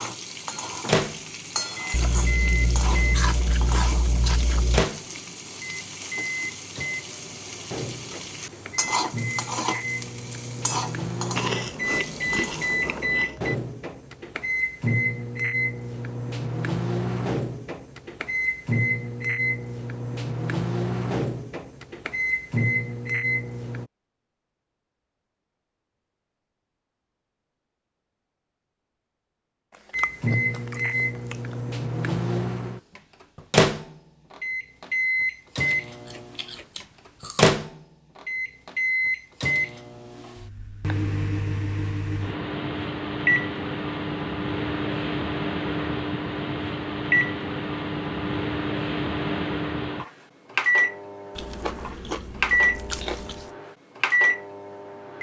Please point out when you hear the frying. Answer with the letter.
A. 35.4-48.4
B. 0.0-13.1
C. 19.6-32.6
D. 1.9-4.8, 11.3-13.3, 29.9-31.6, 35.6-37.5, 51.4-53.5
B.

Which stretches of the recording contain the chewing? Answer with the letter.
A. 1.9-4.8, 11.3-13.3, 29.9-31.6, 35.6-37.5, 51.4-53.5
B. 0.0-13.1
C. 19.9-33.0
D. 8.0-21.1
A.